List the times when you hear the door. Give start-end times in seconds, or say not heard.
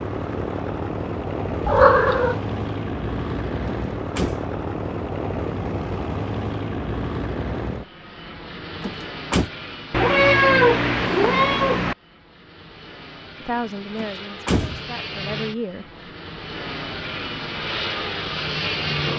3.6-4.5, 8.8-9.5, 13.9-14.8.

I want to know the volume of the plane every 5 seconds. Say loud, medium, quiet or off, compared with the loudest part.
loud, loud, medium, loud.